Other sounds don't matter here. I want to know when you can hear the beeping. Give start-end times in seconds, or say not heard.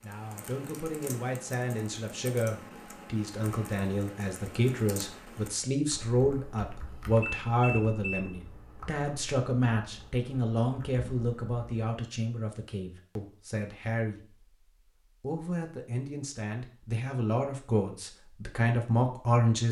7.2-8.2.